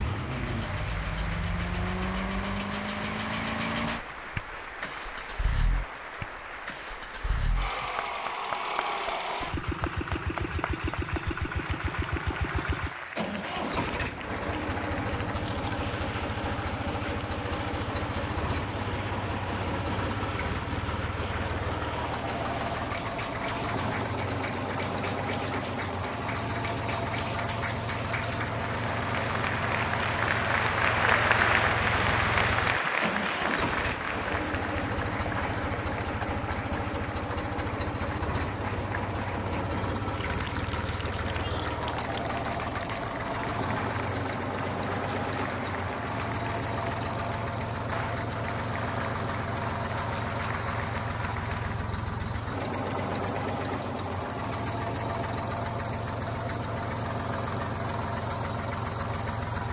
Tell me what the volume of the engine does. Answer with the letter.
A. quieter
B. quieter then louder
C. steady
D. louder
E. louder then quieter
C.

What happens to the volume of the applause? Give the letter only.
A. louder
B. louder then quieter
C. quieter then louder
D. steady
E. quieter
B.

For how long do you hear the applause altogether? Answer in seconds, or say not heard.
52 s.